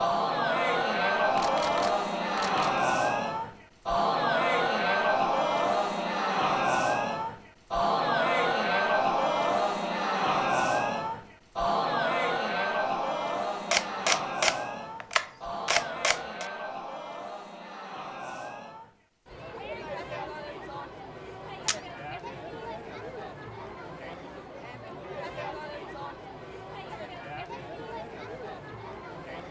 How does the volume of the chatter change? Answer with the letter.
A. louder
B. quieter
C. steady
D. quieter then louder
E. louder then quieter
B.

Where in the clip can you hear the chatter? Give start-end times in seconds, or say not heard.
0.0-29.4.